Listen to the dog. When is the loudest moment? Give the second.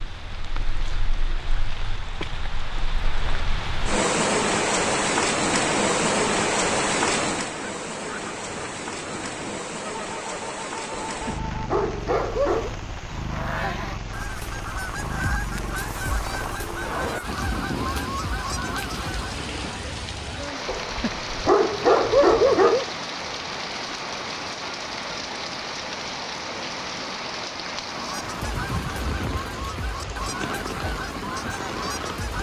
22 s.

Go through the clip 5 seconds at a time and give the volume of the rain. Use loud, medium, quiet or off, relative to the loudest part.
loud, loud, medium, medium, medium, medium, medium.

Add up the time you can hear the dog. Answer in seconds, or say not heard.
4 s.